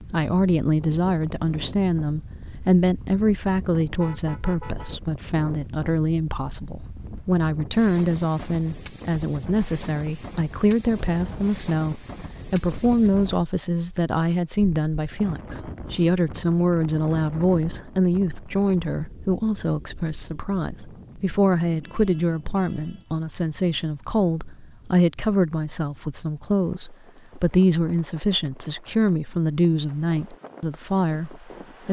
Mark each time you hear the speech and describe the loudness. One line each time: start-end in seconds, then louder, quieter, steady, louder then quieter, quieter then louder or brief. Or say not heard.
0.0-31.8 steady.